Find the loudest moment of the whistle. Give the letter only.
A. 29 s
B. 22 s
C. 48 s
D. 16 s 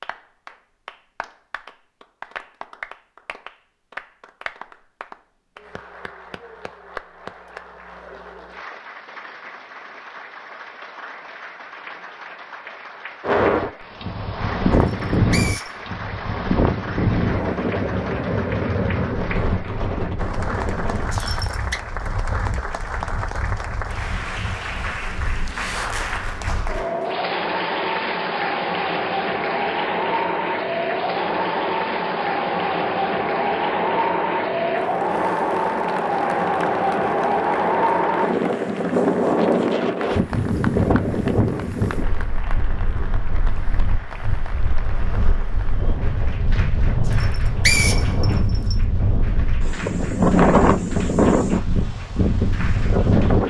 C.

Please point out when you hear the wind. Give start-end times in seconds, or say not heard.
13.2-53.4.